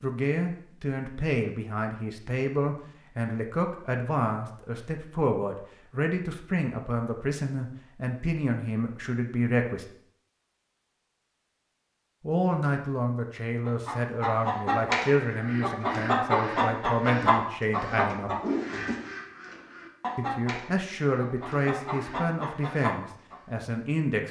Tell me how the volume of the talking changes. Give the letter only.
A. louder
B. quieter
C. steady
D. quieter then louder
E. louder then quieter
C.